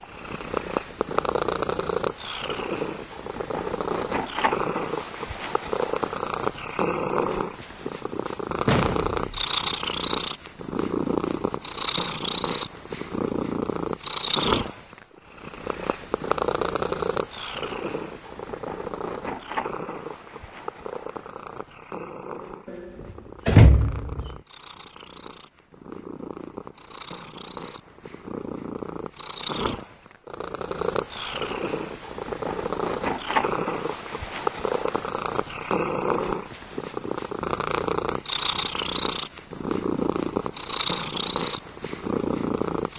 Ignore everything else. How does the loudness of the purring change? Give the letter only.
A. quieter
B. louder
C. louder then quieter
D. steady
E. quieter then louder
E.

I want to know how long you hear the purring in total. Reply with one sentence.
You can hear the purring for 43 seconds altogether.